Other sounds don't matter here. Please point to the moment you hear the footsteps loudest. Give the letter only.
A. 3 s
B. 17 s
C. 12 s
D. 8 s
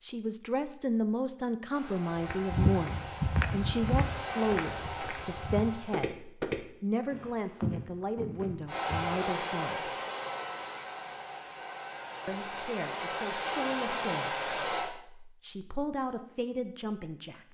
A.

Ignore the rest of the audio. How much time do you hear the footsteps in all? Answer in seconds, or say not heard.
7 s.